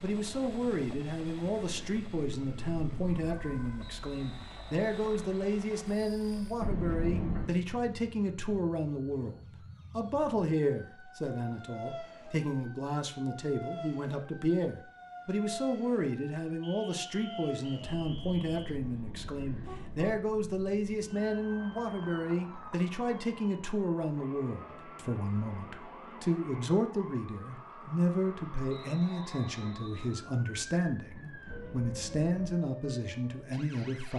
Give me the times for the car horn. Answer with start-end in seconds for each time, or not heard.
6.6-7.6, 17.8-20.2, 31.4-32.6.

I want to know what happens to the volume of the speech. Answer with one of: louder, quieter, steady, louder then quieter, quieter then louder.
steady.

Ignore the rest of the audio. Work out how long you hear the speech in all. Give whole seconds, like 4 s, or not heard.
34 s.